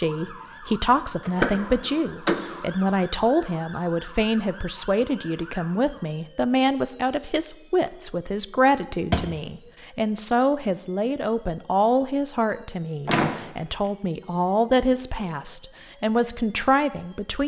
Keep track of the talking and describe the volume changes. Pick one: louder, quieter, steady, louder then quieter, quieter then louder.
steady.